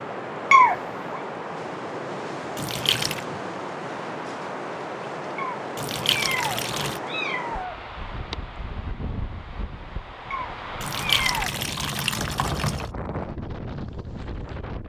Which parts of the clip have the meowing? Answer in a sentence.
You can hear the meowing from 0.5 to 1.2 s, from 5.3 to 7.8 s and from 10.3 to 11.5 s.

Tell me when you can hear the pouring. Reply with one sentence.
The pouring can be heard from 2.5 to 3.2 s, from 5.8 to 7.0 s and from 10.8 to 12.9 s.